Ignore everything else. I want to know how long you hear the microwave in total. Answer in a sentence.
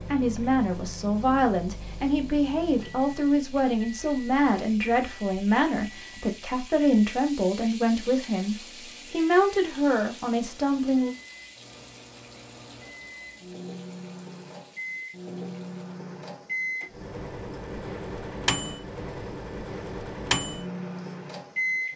The microwave can be heard for 22 seconds in total.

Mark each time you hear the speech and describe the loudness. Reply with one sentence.
The speech can be heard from 0.1 to 11.2 s, at a steady volume.